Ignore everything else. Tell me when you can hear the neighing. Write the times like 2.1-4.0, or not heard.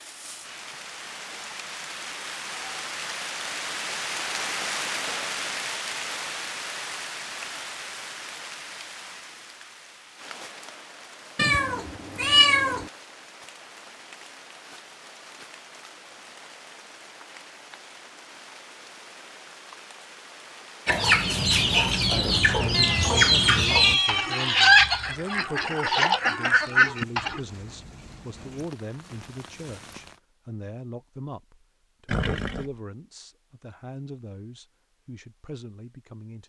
32.0-32.8.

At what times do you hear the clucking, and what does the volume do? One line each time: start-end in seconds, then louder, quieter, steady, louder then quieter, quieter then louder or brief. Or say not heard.
20.9-27.4 steady.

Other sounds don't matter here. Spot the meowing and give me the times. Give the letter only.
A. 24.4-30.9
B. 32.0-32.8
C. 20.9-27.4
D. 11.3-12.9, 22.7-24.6
D.